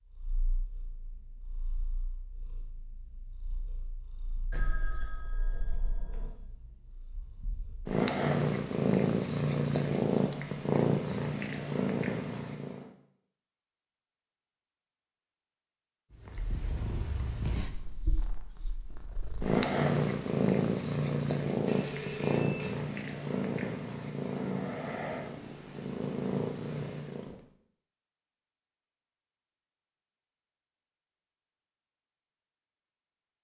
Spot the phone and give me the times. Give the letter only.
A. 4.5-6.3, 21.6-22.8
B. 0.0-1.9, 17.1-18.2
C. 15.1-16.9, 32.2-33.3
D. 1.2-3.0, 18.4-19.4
A.